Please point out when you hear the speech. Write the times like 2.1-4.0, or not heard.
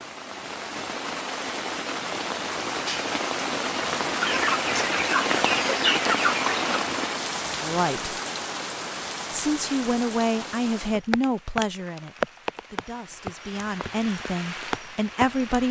7.6-8.2, 9.3-15.6.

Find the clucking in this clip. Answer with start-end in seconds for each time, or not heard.
4.2-6.7.